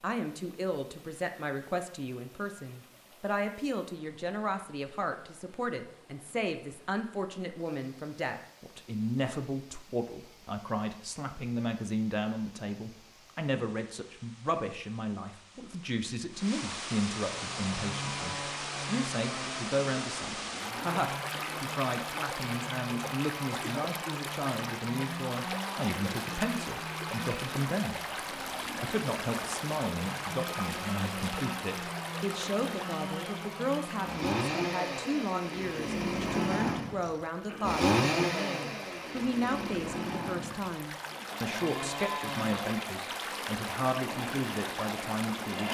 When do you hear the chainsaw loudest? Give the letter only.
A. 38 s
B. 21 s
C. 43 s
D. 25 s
A.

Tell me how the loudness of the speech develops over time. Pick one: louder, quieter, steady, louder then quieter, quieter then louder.
steady.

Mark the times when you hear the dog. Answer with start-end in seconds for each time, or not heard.
not heard.